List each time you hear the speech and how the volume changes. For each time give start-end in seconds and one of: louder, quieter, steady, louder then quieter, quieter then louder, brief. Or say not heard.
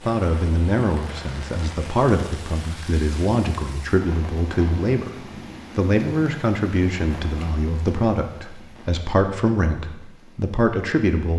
0.0-11.3 steady.